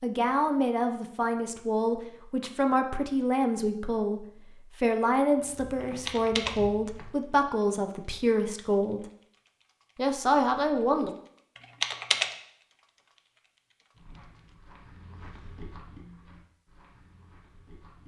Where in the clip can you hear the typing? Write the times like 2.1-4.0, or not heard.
5.8-6.6, 11.6-12.3.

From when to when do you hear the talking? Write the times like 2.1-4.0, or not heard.
0.0-9.1, 9.9-11.1.